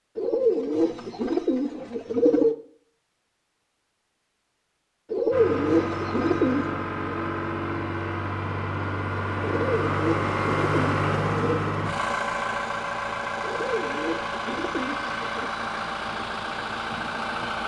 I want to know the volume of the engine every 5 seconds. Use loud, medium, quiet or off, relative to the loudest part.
off, loud, loud, loud.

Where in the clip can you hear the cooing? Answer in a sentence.
You can hear the cooing from 0.1 to 2.5 s, from 5.1 to 6.8 s, from 9.4 to 11.7 s and from 13.4 to 15.5 s.